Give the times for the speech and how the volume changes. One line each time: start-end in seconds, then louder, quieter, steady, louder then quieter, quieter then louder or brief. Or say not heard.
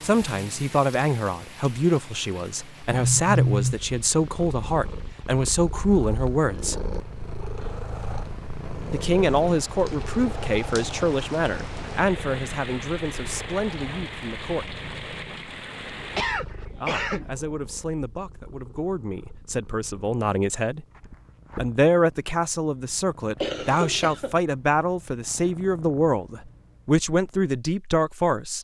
0.0-6.8 steady
8.9-14.8 quieter
16.8-20.9 louder
21.6-28.5 steady.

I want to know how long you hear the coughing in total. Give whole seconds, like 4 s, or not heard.
3 s.